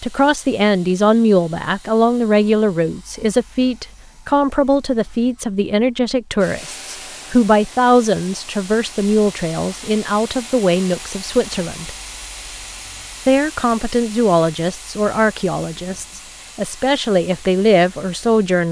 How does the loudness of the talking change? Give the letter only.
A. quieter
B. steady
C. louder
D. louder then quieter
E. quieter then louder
B.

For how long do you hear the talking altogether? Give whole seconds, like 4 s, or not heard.
17 s.